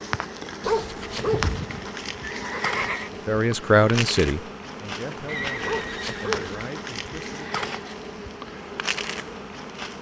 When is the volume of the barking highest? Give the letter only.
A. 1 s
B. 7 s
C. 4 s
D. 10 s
A.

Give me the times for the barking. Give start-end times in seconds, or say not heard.
0.6-1.6, 5.7-6.5.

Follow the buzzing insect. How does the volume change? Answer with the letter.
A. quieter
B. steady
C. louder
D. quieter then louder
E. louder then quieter
B.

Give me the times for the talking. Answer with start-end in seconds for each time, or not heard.
3.2-7.6.